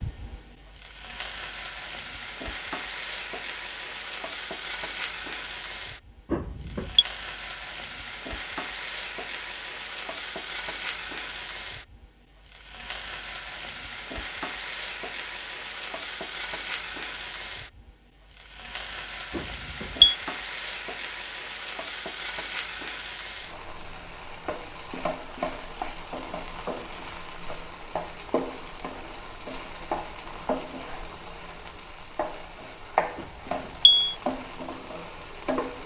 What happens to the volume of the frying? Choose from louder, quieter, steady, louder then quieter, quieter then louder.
steady.